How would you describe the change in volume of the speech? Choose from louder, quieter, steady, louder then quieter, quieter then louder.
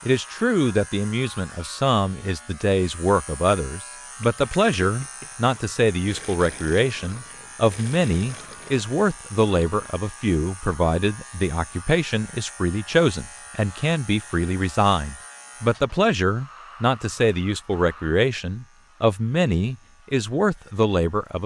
steady.